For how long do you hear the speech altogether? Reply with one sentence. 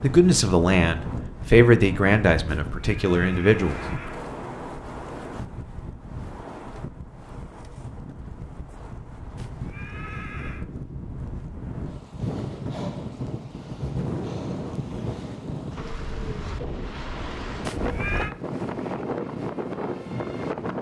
You can hear the speech for 4 seconds altogether.